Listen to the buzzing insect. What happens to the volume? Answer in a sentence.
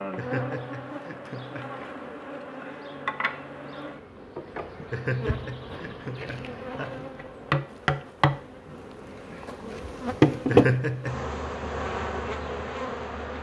The volume of the buzzing insect goes up.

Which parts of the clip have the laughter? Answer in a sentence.
The laughter can be heard from 0.1 to 2.1 s, from 4.9 to 7.0 s and from 10.4 to 11.3 s.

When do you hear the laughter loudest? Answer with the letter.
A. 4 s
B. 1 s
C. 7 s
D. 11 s
D.